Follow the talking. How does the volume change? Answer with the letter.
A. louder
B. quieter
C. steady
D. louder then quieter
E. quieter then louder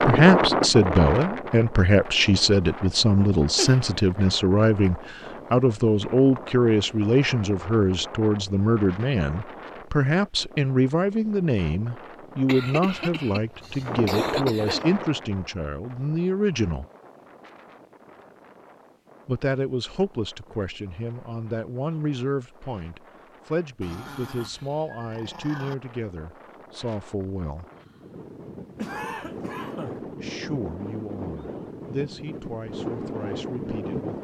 B.